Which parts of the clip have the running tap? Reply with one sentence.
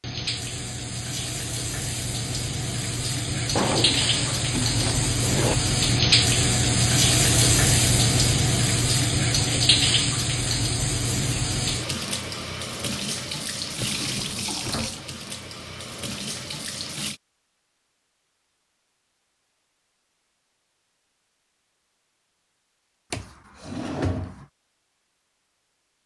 You can hear the running tap from 0.0 to 17.2 s.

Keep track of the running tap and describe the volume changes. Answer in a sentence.
The volume of the running tap goes up, then down.